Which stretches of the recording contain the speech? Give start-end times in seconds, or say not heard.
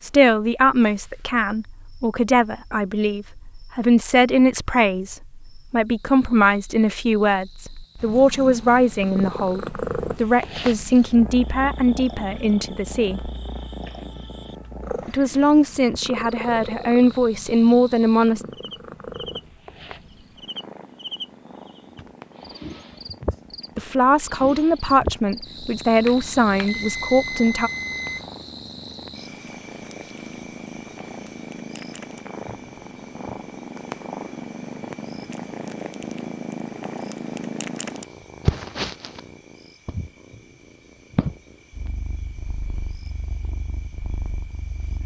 0.0-13.3, 15.1-18.4, 23.8-27.7.